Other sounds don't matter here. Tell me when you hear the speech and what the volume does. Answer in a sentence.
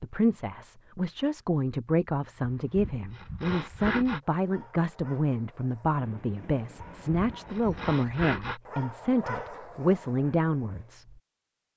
You can hear the speech from 0.0 to 11.2 s, at a steady volume.